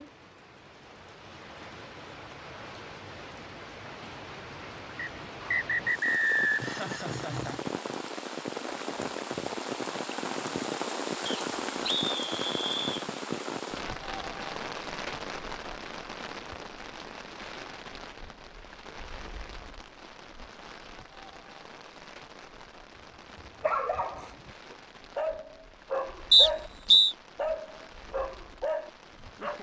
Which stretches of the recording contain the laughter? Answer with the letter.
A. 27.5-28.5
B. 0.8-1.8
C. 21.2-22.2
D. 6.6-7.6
D.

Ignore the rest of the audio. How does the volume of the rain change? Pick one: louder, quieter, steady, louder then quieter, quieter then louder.
louder then quieter.